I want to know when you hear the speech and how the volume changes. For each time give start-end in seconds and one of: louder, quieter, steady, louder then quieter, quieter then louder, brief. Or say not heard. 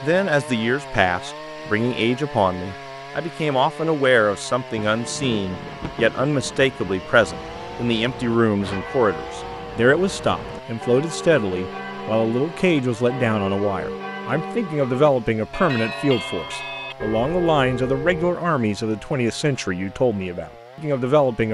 0.0-21.4 steady.